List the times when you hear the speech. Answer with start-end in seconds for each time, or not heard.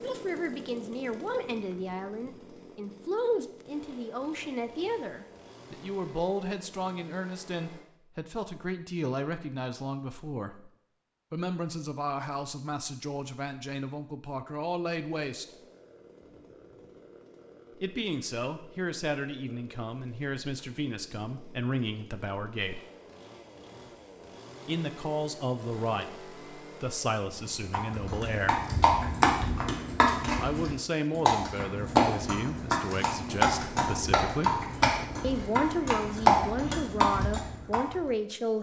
0.0-10.7, 11.3-15.4, 17.8-22.8, 24.6-28.6, 30.4-38.5.